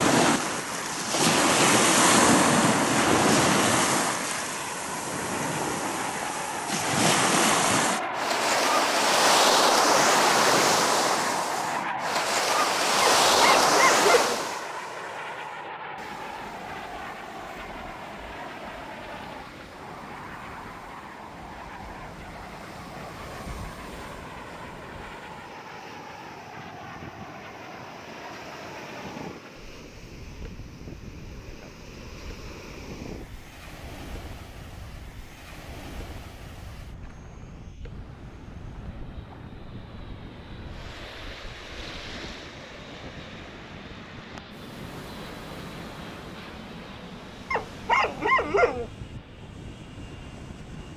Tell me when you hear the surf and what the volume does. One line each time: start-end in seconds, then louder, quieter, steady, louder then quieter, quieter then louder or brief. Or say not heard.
0.0-50.9 quieter.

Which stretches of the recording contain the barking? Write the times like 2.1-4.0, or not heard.
13.0-14.4, 47.5-48.9.